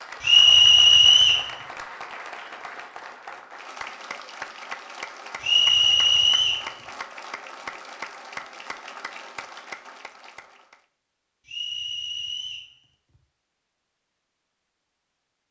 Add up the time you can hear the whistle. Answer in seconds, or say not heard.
4 s.